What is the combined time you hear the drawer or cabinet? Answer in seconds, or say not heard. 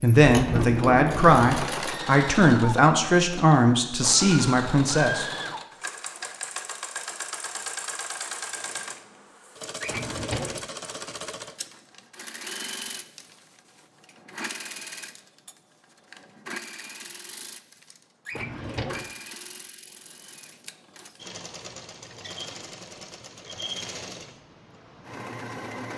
3 s.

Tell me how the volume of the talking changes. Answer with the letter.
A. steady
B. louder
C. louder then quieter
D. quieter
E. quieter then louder
A.